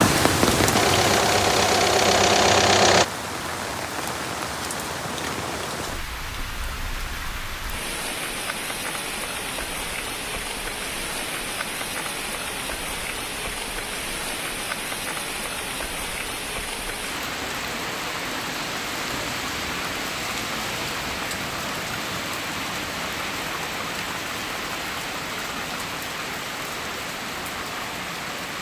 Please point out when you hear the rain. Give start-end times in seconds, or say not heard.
0.0-28.5.